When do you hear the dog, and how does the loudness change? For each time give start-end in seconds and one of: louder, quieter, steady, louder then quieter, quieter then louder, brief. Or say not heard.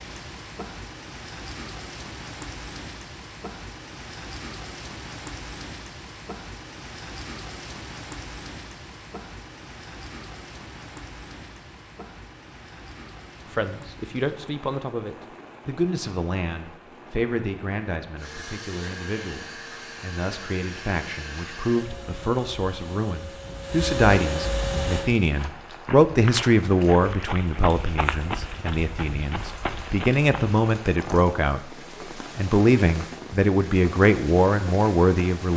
not heard.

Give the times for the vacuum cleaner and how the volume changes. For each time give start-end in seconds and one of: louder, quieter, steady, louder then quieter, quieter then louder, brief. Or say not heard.
18.1-25.1 louder.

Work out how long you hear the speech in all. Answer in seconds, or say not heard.
21 s.